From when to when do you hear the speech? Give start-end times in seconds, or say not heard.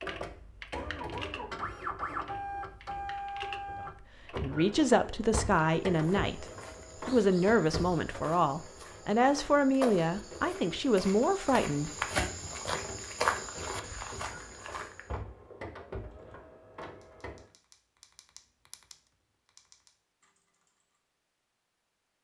3.9-6.5, 7.0-12.3.